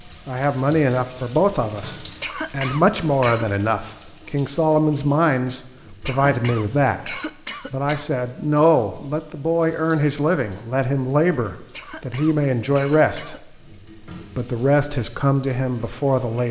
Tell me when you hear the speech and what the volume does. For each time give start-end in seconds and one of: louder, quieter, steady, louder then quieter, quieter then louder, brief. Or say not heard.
0.1-13.6 steady
14.3-16.4 brief.